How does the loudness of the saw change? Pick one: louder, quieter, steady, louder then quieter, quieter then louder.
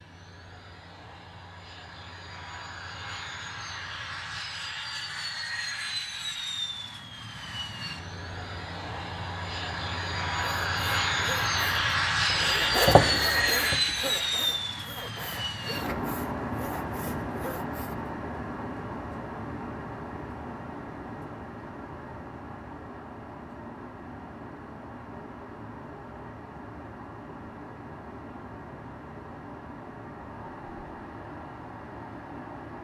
louder then quieter.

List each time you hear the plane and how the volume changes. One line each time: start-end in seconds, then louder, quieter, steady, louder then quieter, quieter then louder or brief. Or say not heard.
0.0-32.7 louder then quieter.